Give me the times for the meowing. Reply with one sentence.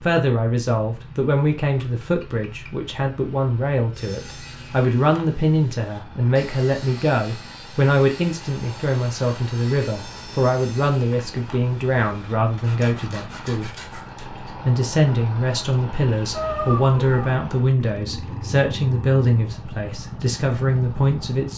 You can hear the meowing from 1.6 to 2.7 s and from 16.3 to 17.4 s.